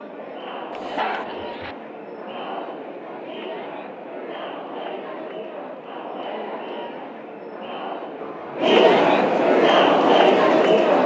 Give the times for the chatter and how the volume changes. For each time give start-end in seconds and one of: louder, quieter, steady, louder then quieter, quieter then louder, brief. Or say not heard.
0.0-11.0 louder.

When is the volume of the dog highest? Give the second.
9 s.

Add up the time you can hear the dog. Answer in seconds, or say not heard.
2 s.